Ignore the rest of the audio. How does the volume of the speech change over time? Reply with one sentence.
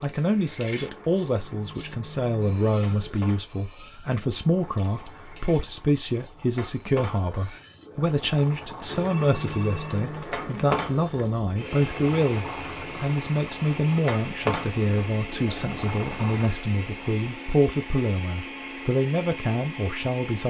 The volume of the speech stays about the same.